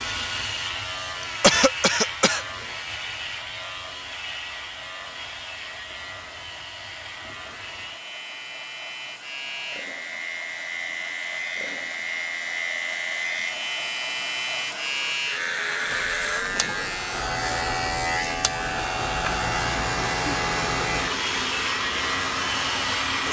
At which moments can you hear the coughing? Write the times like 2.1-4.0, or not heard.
1.2-2.5.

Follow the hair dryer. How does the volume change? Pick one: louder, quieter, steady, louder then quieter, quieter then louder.
louder.